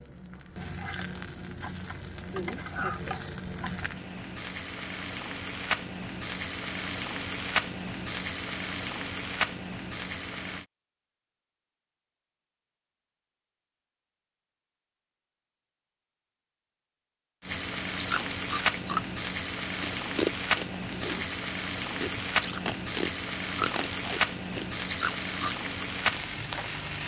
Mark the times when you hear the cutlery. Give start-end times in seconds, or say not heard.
not heard.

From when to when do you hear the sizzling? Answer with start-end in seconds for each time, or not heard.
0.0-10.7, 17.4-27.0.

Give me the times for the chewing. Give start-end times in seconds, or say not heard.
17.9-25.6.